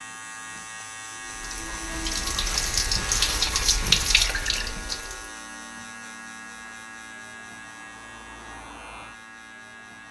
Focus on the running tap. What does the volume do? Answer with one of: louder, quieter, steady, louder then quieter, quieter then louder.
louder then quieter.